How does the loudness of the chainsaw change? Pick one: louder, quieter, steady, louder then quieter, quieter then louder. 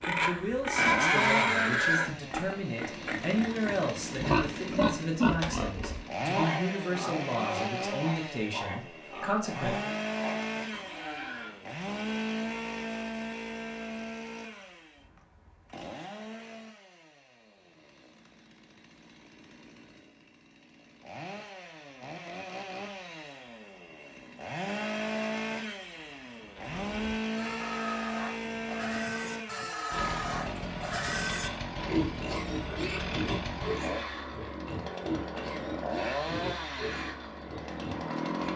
quieter then louder.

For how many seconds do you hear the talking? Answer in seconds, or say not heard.
10 s.